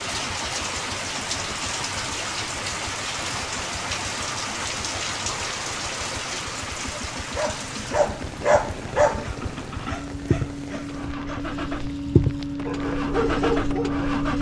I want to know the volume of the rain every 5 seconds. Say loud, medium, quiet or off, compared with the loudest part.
loud, loud, quiet.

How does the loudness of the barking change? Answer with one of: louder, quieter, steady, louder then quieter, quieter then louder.
quieter then louder.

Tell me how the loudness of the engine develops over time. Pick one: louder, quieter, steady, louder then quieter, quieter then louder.
louder.